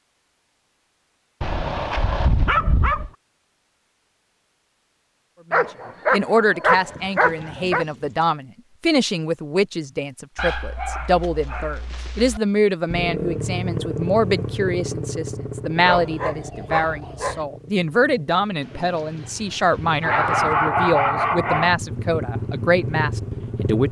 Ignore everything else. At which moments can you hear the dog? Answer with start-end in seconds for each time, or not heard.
1.4-3.1, 5.5-7.8, 10.3-12.4, 15.8-17.4, 20.0-21.8.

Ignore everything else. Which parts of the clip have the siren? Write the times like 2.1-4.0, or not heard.
not heard.